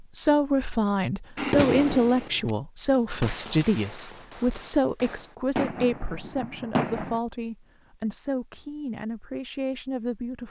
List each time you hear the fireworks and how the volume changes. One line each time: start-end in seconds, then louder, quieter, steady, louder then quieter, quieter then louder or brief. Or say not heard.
1.4-7.2 quieter then louder.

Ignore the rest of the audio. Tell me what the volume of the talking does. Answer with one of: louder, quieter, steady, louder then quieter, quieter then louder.
quieter.